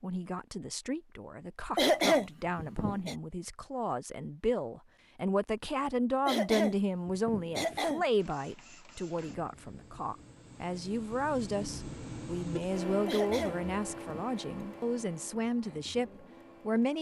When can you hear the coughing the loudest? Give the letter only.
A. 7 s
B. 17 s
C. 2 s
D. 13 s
C.